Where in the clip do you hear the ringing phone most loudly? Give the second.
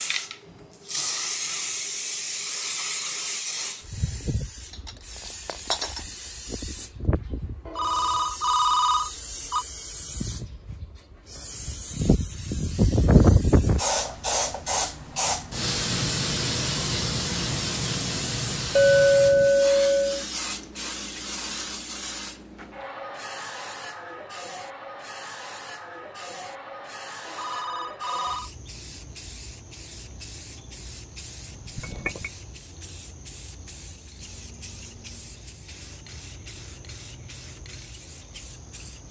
9 s.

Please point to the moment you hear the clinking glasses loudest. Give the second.
19 s.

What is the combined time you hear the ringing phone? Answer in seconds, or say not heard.
3 s.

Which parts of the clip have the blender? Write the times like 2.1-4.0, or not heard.
not heard.